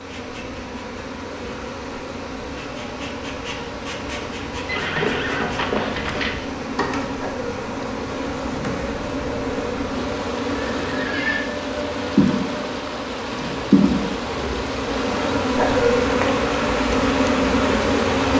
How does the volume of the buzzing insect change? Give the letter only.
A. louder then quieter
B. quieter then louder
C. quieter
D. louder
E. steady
D.